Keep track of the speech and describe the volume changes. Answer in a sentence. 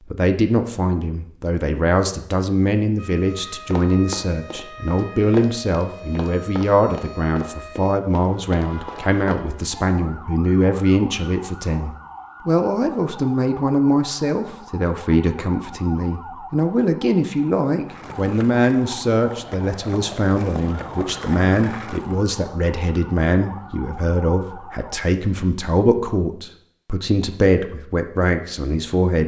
The loudness of the speech stays about the same.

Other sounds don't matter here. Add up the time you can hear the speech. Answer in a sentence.
The speech can be heard for 29 seconds in total.